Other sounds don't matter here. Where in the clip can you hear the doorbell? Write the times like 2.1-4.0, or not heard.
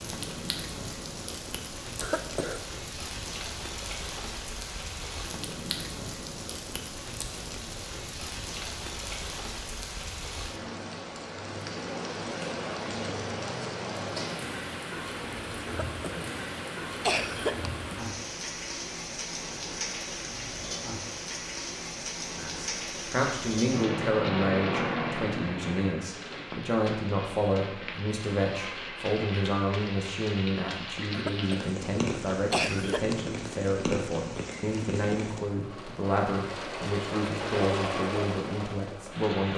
not heard.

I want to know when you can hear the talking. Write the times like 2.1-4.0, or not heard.
22.3-39.5.